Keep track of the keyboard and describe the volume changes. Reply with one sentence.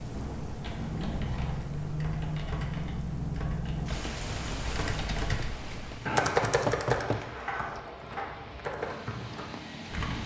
The volume of the keyboard goes up, then down.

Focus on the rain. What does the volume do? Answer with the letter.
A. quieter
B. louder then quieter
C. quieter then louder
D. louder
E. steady
A.